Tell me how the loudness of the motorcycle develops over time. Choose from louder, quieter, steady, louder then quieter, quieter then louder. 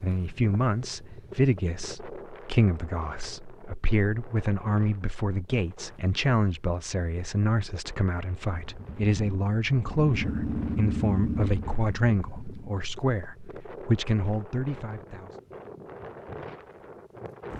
louder then quieter.